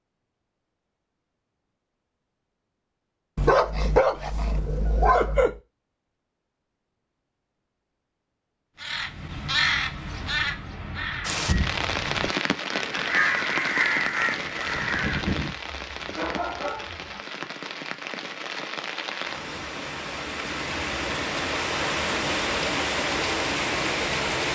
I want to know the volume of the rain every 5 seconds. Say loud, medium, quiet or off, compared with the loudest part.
off, off, loud, medium, loud.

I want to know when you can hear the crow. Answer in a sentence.
You can hear the crow from 8.8 to 15.6 s.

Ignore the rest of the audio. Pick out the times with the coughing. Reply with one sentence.
You can't hear the coughing here.